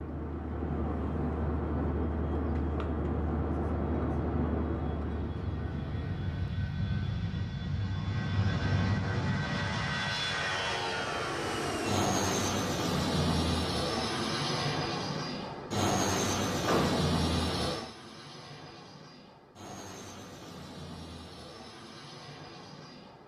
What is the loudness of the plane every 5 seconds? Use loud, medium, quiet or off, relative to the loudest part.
loud, loud, loud, loud, quiet.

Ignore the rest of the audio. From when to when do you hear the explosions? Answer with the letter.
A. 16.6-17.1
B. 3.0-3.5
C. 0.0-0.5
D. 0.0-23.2
A.